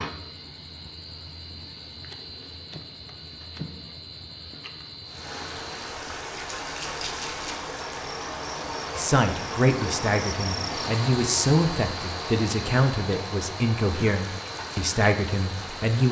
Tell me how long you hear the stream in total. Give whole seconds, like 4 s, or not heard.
11 s.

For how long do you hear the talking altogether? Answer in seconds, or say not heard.
7 s.